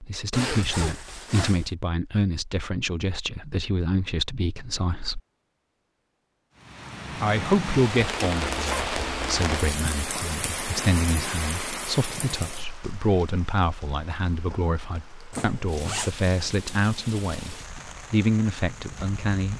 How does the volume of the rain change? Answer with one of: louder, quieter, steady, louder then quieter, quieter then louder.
quieter.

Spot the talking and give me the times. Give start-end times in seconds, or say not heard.
0.0-5.2, 7.2-19.5.